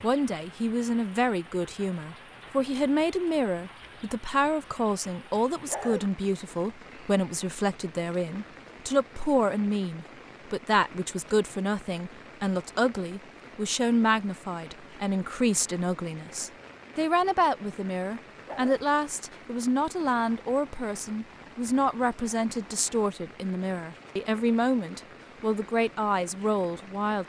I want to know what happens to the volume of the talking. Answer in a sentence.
The loudness of the talking stays about the same.